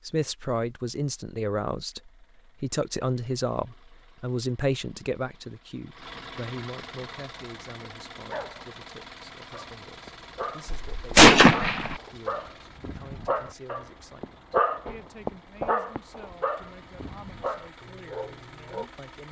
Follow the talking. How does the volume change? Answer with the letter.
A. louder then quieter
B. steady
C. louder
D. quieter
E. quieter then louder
D.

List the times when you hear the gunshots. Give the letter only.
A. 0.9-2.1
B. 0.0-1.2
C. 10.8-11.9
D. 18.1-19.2
C.